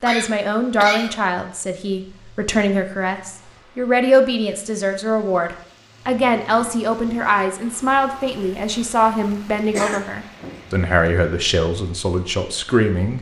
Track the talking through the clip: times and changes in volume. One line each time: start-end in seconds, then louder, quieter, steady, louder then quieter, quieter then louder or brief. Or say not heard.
0.0-13.1 steady.